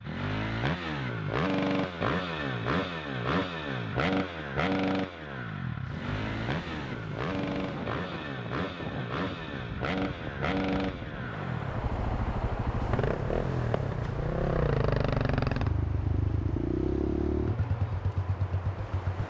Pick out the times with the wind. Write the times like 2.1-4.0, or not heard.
5.8-19.2.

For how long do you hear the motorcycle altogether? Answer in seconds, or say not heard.
19 s.